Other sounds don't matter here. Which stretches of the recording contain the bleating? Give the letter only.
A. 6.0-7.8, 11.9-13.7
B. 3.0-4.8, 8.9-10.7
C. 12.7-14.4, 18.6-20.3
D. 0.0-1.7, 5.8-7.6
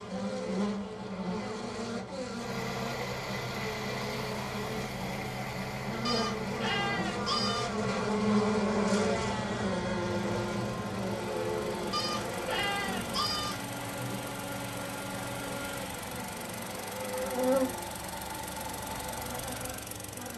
A.